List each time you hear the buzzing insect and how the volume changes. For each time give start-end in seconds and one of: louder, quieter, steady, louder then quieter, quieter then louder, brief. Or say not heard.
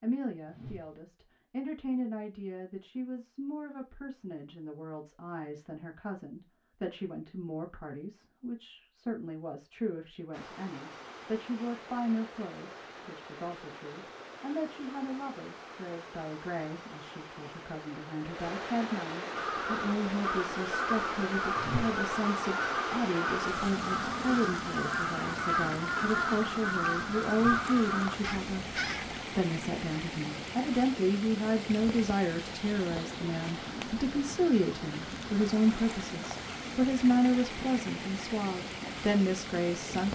not heard.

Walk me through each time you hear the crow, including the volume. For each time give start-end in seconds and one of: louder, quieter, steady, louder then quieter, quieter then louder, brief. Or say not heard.
19.4-29.2 steady.